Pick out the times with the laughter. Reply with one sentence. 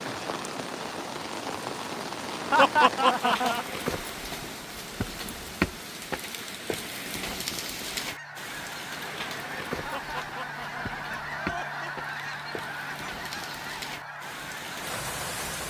The laughter can be heard from 2.5 to 3.6 s and from 9.8 to 11.9 s.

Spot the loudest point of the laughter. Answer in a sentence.
The volume of the laughter peaks at 3 seconds.